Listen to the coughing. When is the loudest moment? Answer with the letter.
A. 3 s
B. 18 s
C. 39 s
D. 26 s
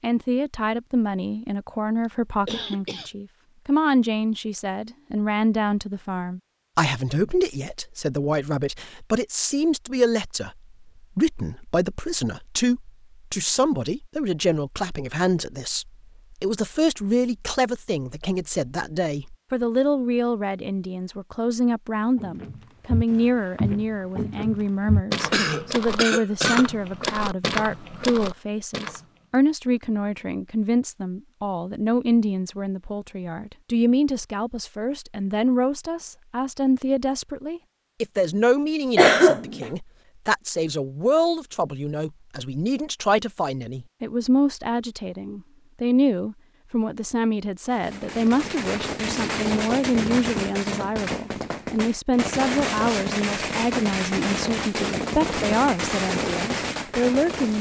C.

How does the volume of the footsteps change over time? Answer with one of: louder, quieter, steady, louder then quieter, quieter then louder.
steady.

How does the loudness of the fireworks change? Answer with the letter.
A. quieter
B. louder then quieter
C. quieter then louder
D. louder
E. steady
E.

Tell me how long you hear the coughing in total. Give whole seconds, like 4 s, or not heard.
3 s.